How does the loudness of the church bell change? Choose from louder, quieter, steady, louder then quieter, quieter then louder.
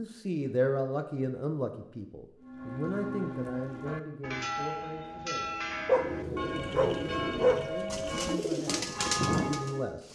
steady.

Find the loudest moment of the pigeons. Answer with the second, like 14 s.
9 s.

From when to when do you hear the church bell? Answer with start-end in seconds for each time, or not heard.
2.4-9.9.